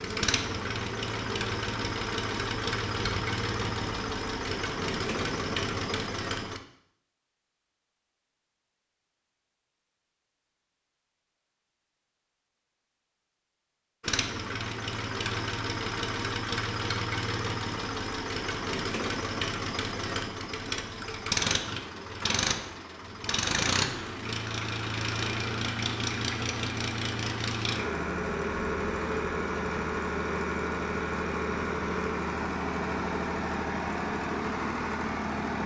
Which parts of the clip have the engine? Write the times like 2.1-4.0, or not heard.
0.0-6.6, 14.0-35.6.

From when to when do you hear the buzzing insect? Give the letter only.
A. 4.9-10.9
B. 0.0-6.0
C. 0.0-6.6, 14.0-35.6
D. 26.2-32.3
B.